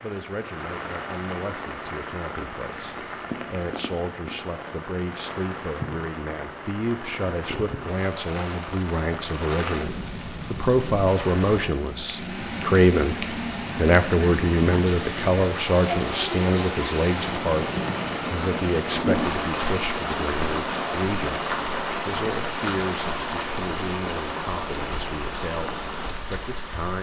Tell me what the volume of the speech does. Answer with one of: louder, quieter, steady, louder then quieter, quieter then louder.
louder then quieter.